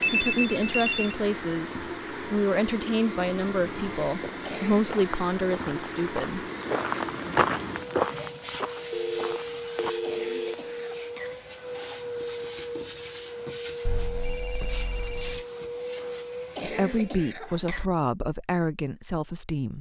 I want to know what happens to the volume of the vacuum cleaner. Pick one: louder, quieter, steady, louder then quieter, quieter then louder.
steady.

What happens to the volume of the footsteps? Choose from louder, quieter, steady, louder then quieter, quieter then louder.
louder then quieter.